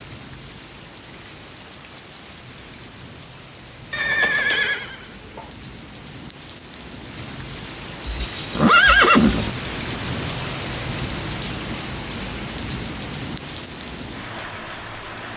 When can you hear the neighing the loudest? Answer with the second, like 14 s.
9 s.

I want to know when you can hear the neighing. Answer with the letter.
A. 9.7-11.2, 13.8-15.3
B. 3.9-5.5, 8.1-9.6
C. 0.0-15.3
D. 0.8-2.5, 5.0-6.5
B.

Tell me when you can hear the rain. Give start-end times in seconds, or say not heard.
0.0-15.3.